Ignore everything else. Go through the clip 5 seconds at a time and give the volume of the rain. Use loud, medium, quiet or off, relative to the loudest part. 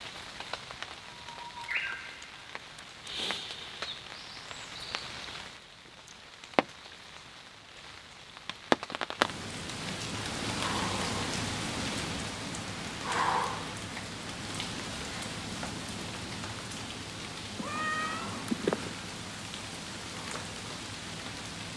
medium, loud, loud, medium, medium.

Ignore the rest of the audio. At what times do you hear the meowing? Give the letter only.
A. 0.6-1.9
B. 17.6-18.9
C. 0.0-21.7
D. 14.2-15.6
B.